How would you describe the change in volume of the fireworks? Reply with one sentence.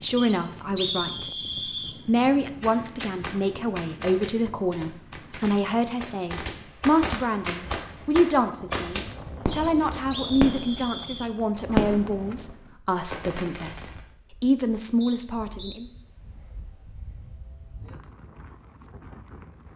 The volume of the fireworks goes up.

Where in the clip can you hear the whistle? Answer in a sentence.
The whistle can be heard from 0.1 to 1.9 s, from 9.5 to 11.3 s and from 15.0 to 15.8 s.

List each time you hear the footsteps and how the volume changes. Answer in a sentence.
You can't hear the footsteps here.